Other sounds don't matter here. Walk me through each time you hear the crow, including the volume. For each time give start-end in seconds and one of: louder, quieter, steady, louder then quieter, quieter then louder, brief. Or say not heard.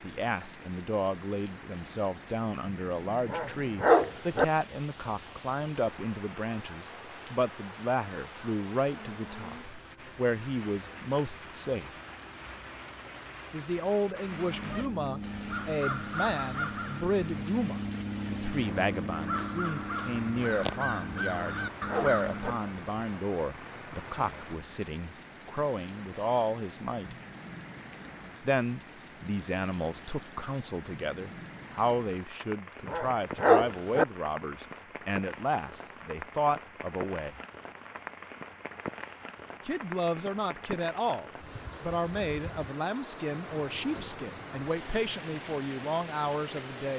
14.3-22.6 steady.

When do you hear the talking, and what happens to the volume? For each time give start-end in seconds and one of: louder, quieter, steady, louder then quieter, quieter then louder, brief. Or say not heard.
0.0-11.9 steady
13.5-27.1 steady
28.4-37.4 steady
39.6-46.9 steady.